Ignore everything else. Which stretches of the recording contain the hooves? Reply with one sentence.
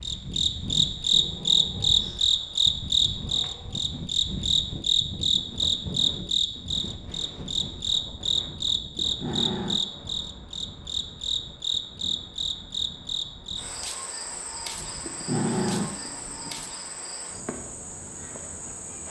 You can't hear the hooves here.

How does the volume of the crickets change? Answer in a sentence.
The volume of the crickets goes down.